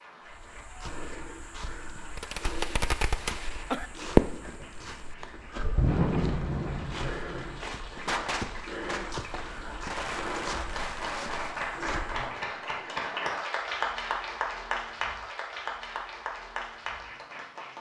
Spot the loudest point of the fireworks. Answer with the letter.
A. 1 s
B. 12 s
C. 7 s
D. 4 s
D.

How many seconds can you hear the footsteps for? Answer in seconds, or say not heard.
12 s.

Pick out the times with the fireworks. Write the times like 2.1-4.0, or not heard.
2.1-4.8, 5.8-11.7.